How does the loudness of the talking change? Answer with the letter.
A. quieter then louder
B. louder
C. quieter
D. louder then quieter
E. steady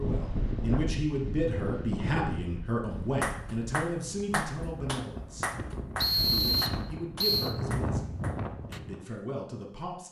C.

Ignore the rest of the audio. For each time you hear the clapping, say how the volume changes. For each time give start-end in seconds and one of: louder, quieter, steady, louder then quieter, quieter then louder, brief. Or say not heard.
3.2-8.8 quieter.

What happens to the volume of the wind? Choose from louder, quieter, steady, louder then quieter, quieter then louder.
quieter then louder.